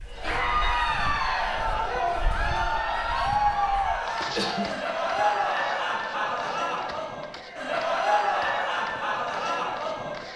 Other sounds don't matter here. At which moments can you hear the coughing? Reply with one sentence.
You can hear the coughing from 4.2 to 4.8 s.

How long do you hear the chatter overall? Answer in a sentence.
The chatter can be heard for 10 seconds in total.